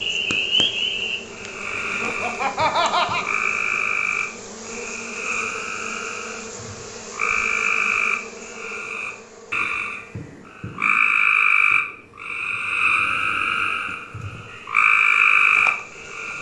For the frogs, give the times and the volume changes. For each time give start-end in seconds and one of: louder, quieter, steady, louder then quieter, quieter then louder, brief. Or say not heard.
0.0-16.3 louder.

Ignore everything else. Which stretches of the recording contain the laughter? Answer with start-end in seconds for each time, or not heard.
2.0-3.3.